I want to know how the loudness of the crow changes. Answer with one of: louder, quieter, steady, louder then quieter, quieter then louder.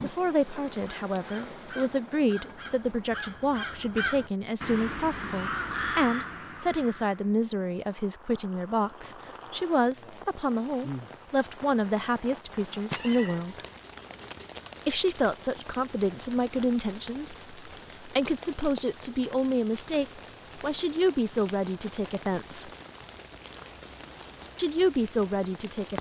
louder.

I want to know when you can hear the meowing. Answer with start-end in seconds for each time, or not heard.
12.9-14.6.